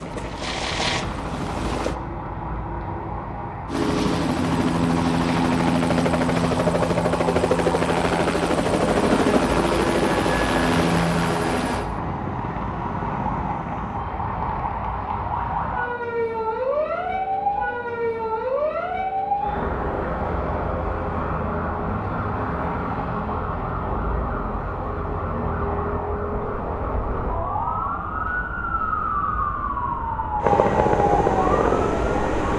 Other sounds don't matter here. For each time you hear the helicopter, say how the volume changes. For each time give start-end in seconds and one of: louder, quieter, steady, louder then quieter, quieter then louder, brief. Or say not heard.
0.0-1.9 brief
3.6-14.1 quieter
30.4-32.5 brief.